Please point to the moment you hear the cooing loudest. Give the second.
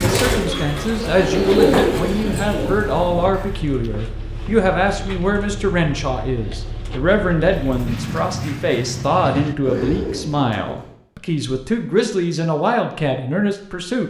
2 s.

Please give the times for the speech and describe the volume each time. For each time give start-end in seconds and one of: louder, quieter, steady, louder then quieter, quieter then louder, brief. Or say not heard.
0.0-14.0 steady.